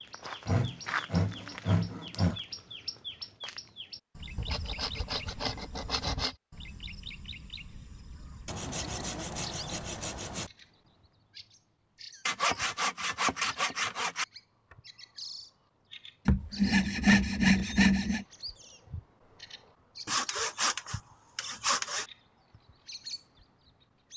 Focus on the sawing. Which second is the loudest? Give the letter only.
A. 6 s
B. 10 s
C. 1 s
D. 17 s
D.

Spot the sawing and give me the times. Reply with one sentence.
You can hear the sawing from 0.5 to 2.4 s, from 4.3 to 6.3 s, from 8.4 to 10.5 s, from 12.2 to 14.2 s, from 16.2 to 18.2 s and from 20.1 to 22.1 s.